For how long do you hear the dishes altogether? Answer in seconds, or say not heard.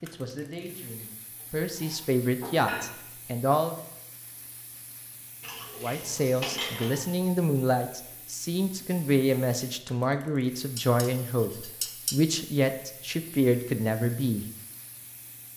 4 s.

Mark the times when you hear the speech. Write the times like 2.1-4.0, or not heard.
0.0-3.8, 5.8-14.4.